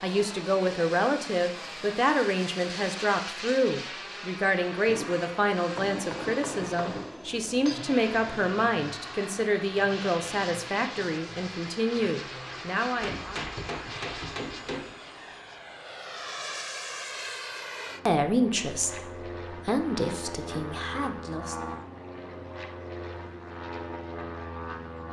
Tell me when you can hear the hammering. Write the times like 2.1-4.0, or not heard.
4.8-7.8, 13.0-14.9.